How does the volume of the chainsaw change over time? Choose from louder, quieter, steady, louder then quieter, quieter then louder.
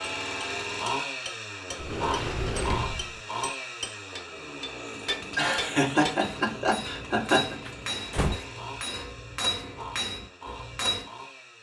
quieter.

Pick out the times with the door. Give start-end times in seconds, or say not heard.
1.8-3.2, 7.7-8.4.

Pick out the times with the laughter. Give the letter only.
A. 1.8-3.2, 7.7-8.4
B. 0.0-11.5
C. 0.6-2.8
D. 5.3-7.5
D.